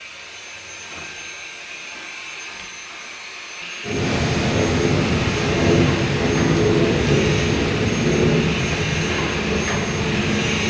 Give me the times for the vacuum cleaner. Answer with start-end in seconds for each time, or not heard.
0.0-10.6.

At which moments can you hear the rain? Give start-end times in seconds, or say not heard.
3.9-10.6.